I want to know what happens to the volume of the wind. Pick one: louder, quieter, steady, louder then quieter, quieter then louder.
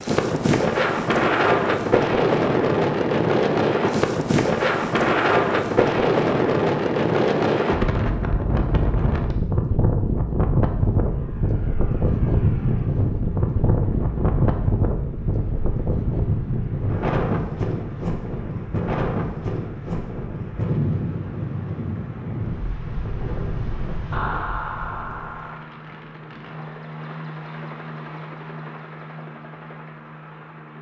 quieter.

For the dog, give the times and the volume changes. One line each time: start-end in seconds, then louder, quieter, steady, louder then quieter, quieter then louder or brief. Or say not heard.
not heard.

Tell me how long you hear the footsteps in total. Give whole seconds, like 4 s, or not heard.
not heard.